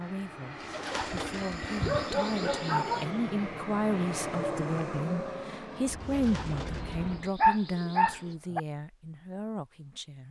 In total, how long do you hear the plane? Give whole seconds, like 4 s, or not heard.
7 s.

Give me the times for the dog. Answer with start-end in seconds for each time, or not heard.
1.1-3.1, 7.4-8.6.